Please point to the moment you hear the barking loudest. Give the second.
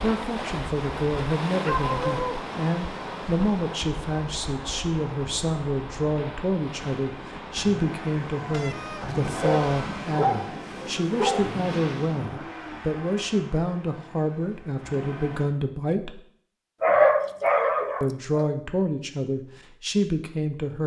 17 s.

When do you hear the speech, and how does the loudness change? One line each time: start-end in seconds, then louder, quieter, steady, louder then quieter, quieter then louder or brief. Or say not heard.
0.0-16.2 steady
18.0-20.8 brief.